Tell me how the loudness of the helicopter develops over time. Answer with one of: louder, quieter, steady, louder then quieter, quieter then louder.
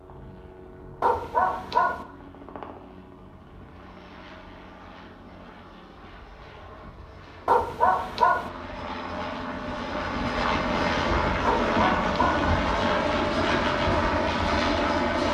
louder.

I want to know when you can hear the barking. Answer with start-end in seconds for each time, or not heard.
1.0-2.0, 7.5-8.5, 11.4-12.4.